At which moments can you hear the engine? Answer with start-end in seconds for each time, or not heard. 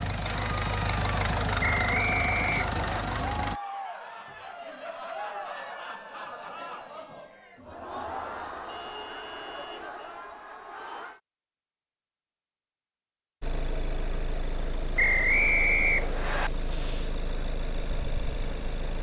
0.0-3.6, 13.4-18.9.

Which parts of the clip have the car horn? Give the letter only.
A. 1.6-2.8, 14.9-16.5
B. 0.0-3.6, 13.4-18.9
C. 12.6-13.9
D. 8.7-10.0
D.